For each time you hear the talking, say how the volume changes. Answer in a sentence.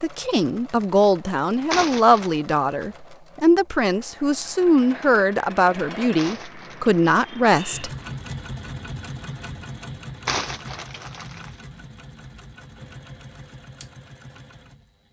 You can hear the talking from 0.0 to 7.9 s, at a steady volume.